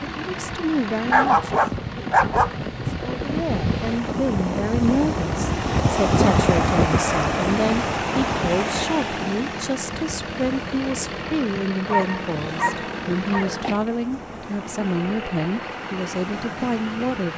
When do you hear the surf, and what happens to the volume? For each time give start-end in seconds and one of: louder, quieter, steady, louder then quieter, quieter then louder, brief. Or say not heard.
0.0-17.3 louder then quieter.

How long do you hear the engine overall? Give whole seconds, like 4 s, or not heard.
17 s.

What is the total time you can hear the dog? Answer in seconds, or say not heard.
3 s.